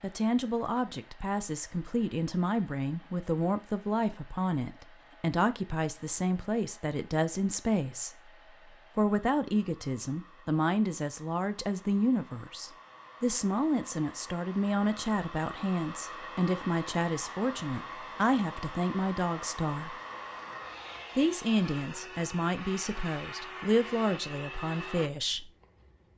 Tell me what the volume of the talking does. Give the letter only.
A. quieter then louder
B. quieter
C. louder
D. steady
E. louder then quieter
D.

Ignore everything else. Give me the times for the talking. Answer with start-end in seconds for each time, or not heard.
0.0-8.3, 8.9-19.9, 21.1-25.5.